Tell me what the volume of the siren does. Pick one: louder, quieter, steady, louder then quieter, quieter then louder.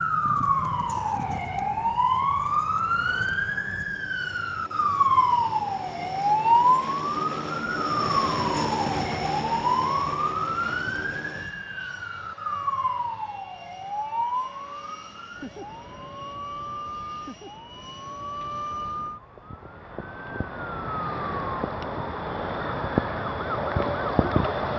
quieter then louder.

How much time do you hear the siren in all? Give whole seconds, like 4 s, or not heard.
25 s.